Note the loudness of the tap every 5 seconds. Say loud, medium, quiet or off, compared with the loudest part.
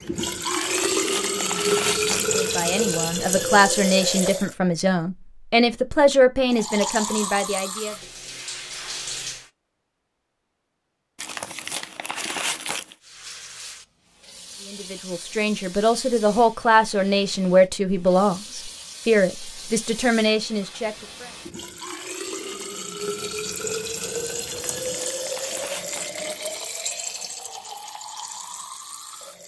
loud, medium, quiet, quiet, medium, medium.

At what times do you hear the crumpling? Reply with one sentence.
The crumpling can be heard from 0.6 to 2.5 s, from 11.2 to 12.9 s and from 24.4 to 26.4 s.